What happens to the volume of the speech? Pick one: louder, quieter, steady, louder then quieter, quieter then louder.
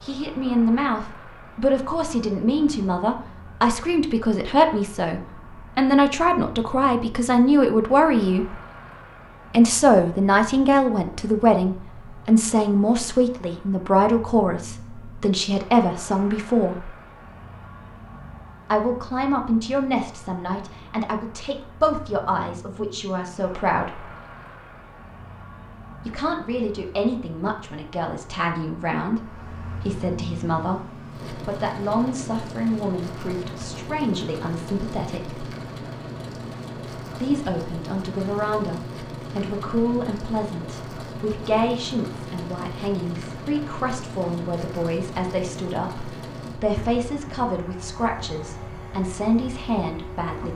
quieter.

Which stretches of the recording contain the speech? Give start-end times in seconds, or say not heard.
0.0-8.5, 9.5-16.9, 18.7-24.1, 26.1-35.5, 37.2-50.5.